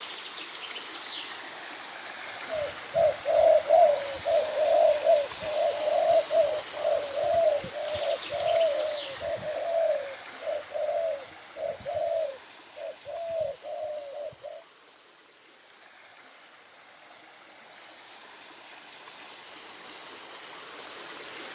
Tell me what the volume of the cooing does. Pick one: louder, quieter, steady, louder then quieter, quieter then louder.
quieter.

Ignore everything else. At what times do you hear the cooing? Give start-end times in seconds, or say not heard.
2.5-14.7.